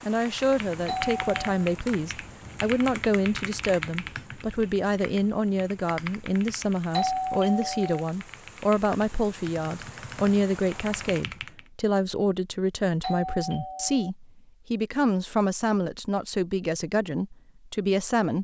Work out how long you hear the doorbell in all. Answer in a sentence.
The doorbell can be heard for 3 seconds in total.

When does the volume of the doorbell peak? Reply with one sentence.
The volume of the doorbell peaks at 7 seconds.